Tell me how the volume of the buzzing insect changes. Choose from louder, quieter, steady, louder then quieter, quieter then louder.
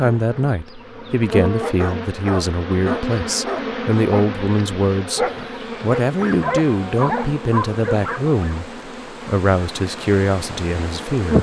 quieter.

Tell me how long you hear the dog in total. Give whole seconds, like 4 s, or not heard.
4 s.